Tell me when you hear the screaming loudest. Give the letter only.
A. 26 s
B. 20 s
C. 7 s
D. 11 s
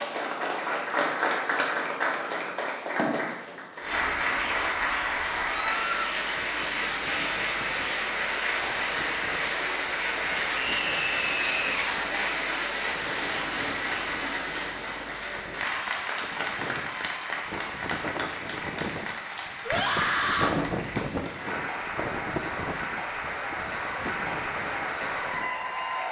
B.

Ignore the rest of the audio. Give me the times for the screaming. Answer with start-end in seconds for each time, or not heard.
5.5-6.1, 10.5-11.8, 19.6-20.6.